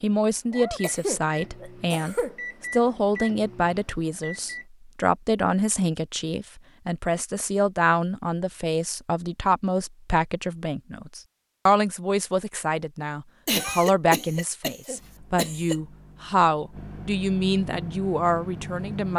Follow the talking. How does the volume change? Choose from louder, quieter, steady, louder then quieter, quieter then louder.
steady.